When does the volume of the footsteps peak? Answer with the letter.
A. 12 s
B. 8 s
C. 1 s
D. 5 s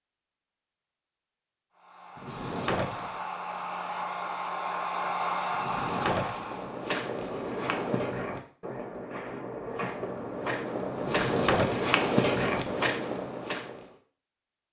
A.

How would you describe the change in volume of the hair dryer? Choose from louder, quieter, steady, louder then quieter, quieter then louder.
louder.